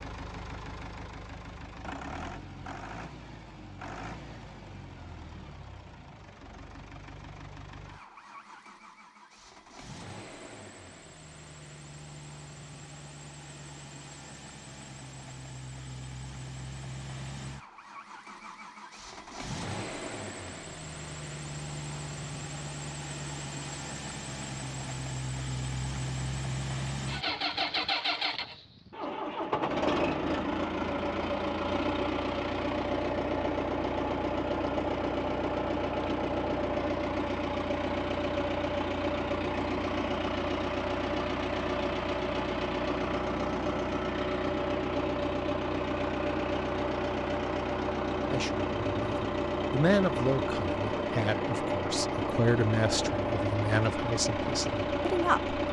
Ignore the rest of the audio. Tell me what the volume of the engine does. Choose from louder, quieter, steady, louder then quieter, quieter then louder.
louder.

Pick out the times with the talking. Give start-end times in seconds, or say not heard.
48.2-55.5.